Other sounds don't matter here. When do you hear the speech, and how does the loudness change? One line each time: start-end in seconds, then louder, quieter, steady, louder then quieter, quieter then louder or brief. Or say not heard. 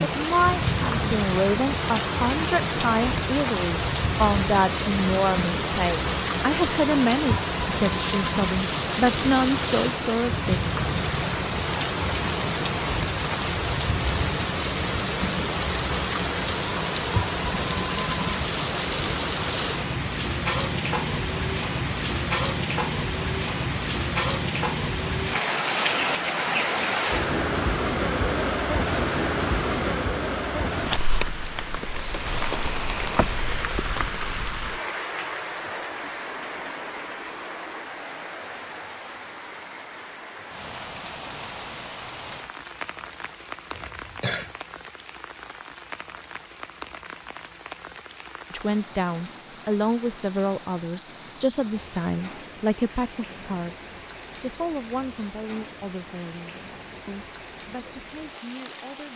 0.0-10.6 steady
48.5-59.1 quieter.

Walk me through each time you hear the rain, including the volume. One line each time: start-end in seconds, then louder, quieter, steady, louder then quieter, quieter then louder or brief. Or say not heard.
0.0-59.1 quieter.